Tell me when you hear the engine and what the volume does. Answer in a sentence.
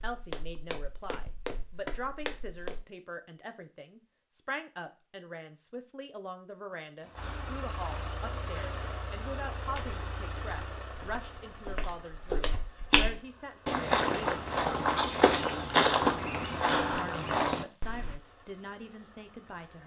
You can hear the engine from 7.2 to 13.8 s, getting quieter; and briefly from 18.1 to 19.8 s.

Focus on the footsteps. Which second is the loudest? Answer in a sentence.
The loudest moment of the footsteps is at 16 seconds.